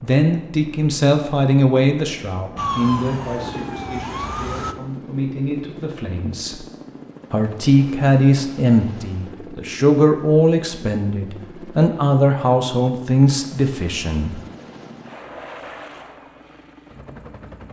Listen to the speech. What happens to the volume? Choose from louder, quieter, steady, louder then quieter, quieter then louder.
quieter then louder.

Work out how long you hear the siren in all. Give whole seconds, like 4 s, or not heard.
2 s.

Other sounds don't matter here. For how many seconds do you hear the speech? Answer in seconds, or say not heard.
14 s.